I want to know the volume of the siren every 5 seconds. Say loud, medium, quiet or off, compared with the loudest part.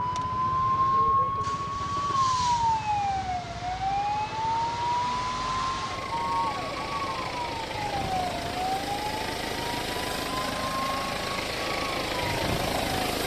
loud, medium, medium.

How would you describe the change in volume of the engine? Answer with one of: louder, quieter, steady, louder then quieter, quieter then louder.
louder.